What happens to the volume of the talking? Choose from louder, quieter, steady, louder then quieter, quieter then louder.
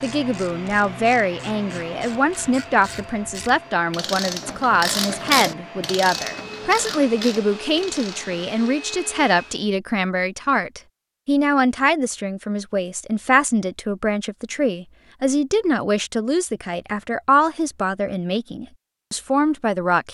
steady.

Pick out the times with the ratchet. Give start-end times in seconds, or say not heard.
0.0-8.6.